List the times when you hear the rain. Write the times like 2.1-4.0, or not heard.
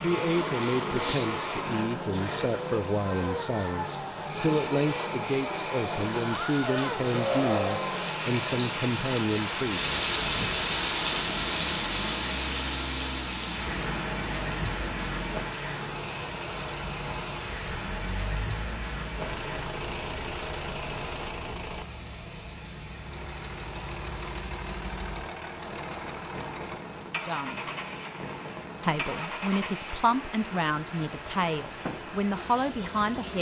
0.2-33.3.